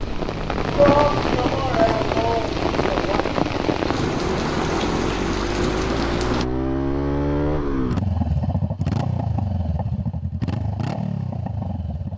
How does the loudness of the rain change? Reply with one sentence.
The volume of the rain stays about the same.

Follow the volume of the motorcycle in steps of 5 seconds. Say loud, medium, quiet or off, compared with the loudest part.
medium, loud, loud.